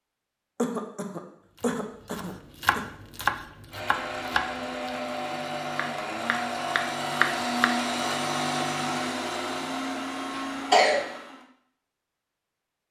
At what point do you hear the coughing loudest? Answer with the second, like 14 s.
11 s.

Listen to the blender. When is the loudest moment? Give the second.
8 s.